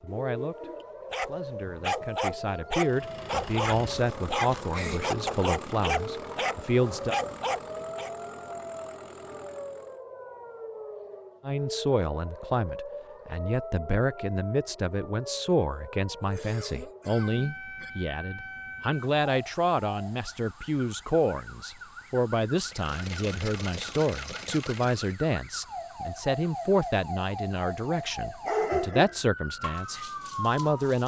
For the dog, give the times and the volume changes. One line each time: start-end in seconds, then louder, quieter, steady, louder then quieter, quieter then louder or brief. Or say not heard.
1.1-8.1 steady
28.4-31.0 brief.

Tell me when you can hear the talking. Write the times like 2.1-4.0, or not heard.
0.0-7.2, 11.4-31.0.